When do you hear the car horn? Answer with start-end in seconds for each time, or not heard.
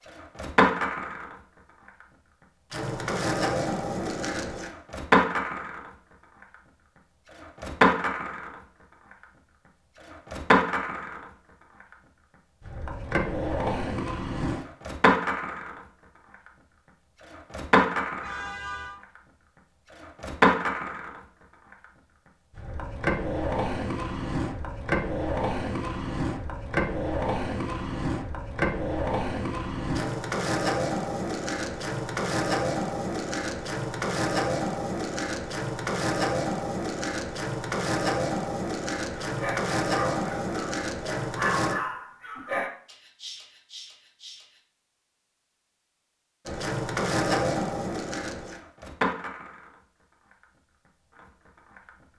18.2-19.0.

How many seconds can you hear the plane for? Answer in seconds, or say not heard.
not heard.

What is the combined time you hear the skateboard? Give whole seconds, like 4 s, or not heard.
47 s.